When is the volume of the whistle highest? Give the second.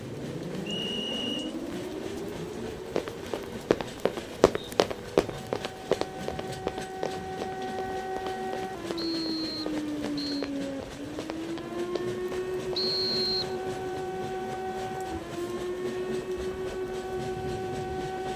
13 s.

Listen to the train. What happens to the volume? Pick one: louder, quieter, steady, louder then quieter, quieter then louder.
steady.